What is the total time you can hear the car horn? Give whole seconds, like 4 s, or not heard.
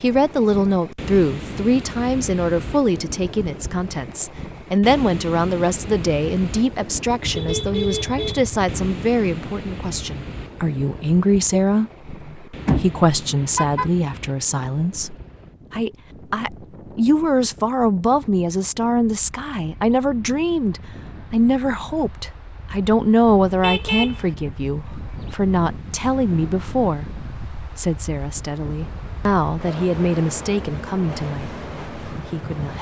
4 s.